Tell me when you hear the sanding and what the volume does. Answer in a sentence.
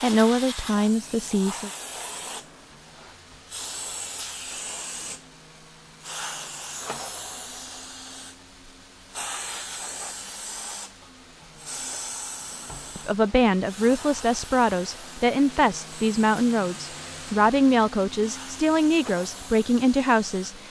The sanding can't be heard in this clip.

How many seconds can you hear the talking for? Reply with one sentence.
You can hear the talking for 9 seconds altogether.